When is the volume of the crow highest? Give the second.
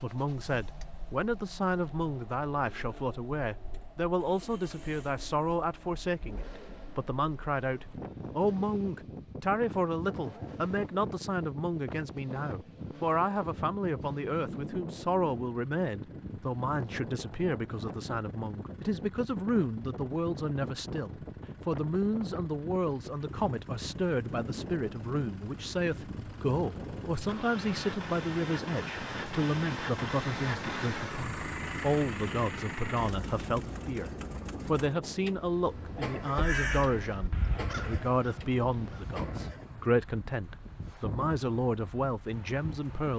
37 s.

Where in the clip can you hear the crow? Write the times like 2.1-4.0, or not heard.
36.4-39.5.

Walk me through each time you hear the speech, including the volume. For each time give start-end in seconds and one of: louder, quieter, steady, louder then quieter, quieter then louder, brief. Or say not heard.
0.0-43.1 steady.